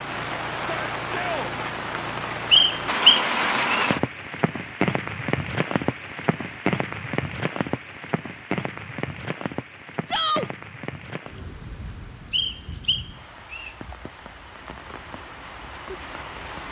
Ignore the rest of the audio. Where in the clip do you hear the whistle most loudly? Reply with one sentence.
The loudest moment of the whistle is at 3 seconds.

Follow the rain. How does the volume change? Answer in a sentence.
The loudness of the rain goes down.